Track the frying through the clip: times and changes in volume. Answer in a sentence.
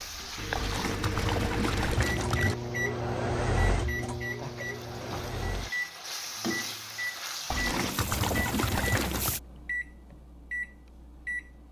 You can hear the frying from 0.0 to 9.4 s, getting quieter then louder.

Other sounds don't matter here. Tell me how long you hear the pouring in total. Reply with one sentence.
You can hear the pouring for 4 seconds altogether.